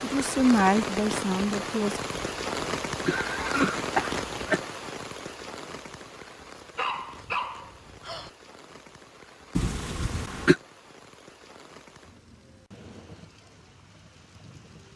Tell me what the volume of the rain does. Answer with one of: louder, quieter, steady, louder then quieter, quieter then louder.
quieter.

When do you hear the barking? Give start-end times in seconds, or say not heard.
6.8-8.3.